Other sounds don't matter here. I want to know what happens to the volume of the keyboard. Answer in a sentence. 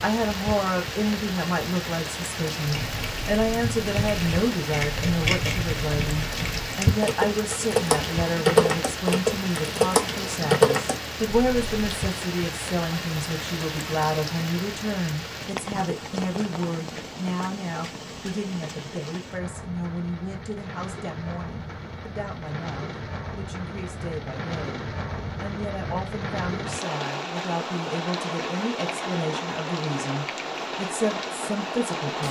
The loudness of the keyboard goes up.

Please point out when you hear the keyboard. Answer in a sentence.
You can hear the keyboard from 2.6 to 12.0 s.